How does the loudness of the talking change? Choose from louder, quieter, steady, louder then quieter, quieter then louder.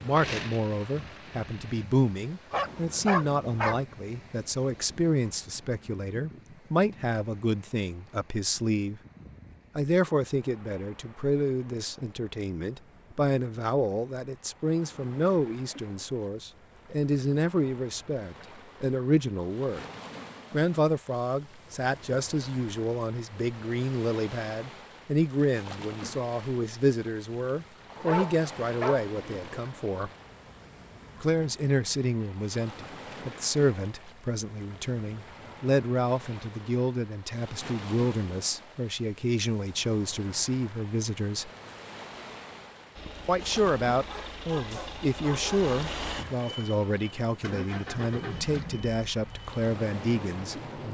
steady.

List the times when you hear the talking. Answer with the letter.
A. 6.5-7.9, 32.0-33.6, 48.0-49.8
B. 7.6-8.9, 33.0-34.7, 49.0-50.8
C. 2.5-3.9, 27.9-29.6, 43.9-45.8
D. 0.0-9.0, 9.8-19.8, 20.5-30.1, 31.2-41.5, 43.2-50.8
D.